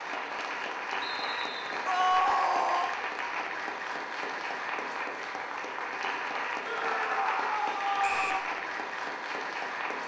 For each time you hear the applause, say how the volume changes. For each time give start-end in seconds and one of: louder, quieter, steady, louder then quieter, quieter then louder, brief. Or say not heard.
0.0-10.0 steady.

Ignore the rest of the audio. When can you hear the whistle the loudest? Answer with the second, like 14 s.
8 s.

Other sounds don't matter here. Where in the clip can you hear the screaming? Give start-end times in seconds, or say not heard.
1.9-3.0, 6.7-8.4.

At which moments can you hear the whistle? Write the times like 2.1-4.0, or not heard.
1.0-1.9, 8.0-8.4.